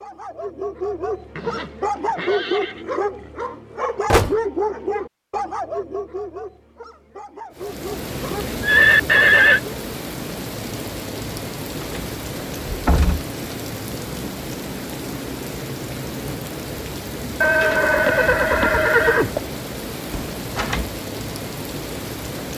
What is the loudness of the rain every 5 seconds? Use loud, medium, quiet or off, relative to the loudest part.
off, loud, loud, loud, loud.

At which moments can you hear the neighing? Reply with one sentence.
The neighing can be heard from 1.4 to 2.9 s, from 8.6 to 9.6 s and from 17.4 to 19.4 s.